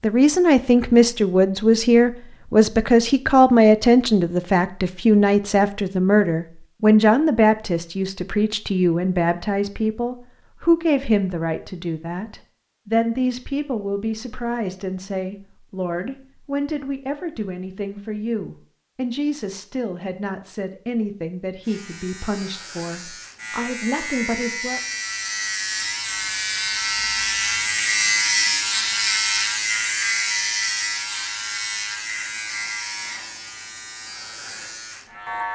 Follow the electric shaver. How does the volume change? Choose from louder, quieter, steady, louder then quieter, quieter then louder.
louder then quieter.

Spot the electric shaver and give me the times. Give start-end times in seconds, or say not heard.
21.6-35.5.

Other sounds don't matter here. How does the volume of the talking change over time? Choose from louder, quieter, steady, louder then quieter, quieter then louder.
quieter.